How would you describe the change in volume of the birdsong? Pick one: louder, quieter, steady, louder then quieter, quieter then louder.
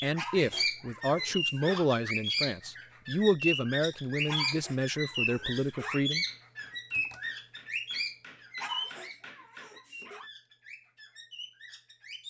quieter.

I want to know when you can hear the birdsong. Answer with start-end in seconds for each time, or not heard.
0.0-12.2.